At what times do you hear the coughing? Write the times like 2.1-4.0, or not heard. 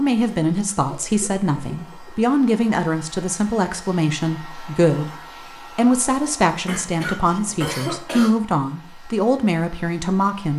0.8-2.1, 6.7-8.4.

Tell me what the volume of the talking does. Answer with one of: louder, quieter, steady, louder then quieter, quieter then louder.
steady.